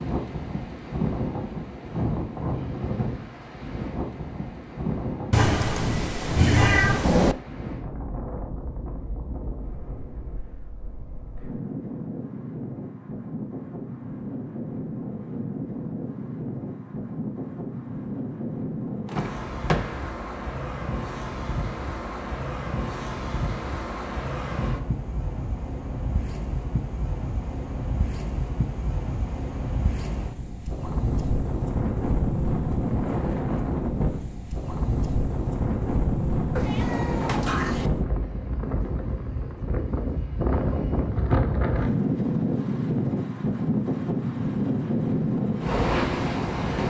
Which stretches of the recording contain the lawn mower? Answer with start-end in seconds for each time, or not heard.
not heard.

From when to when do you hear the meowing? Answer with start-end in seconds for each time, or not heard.
5.3-7.3, 36.5-37.9.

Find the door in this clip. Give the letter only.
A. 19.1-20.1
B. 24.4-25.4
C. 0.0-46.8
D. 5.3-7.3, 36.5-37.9
A.